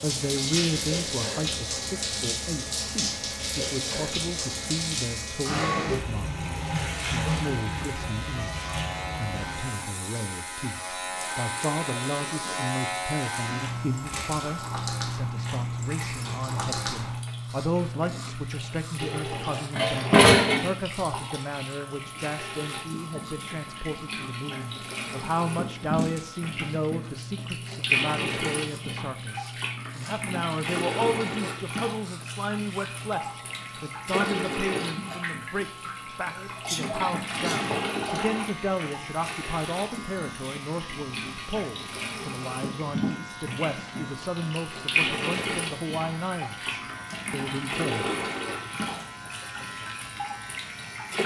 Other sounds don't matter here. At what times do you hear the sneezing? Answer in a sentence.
You can hear the sneezing from 36.2 to 37.8 s.